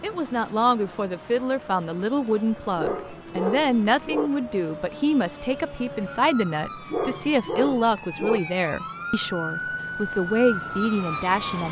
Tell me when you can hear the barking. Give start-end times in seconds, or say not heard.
2.6-4.3, 6.8-8.4.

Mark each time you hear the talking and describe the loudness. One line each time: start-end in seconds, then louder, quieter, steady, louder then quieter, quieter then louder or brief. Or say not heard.
0.0-11.6 steady.